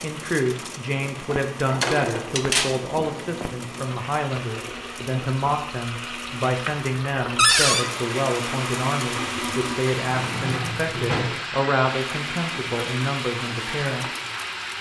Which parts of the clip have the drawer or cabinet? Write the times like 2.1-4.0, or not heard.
1.8-2.8, 7.3-7.8, 10.2-11.4.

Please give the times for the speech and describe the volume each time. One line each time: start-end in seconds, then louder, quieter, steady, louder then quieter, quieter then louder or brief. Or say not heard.
0.0-14.1 steady.